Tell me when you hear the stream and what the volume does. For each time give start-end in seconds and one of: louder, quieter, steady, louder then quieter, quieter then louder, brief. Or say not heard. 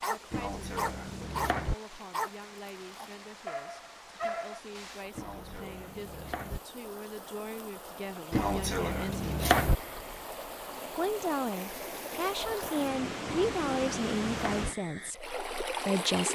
0.0-16.3 louder.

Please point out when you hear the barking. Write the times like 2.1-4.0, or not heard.
0.0-4.6.